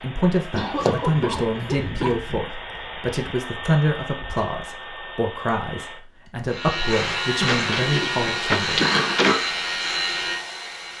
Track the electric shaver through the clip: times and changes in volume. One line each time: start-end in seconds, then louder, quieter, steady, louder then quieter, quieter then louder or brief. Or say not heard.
6.5-10.9 steady.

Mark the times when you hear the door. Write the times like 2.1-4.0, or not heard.
0.5-1.9, 7.5-9.3.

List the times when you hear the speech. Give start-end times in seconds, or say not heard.
0.0-8.8.